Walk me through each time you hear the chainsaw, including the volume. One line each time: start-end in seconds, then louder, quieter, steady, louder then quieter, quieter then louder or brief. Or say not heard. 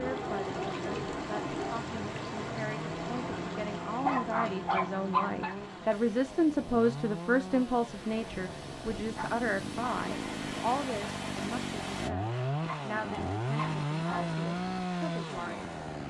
0.0-16.0 louder.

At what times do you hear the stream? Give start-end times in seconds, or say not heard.
0.0-12.1.